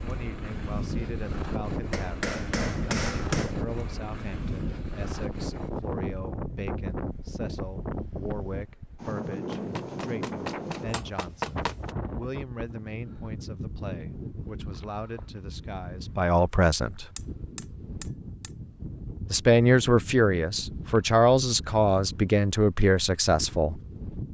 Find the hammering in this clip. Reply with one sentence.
You can hear the hammering from 1.9 to 3.5 s, from 9.5 to 11.9 s and from 17.1 to 18.5 s.